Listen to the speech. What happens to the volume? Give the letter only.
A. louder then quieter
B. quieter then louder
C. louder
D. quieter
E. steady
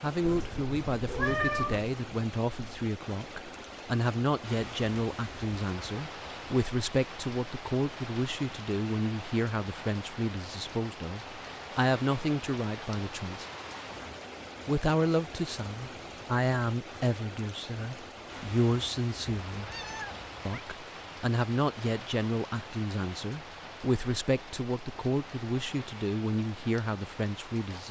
E.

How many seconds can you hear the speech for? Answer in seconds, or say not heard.
26 s.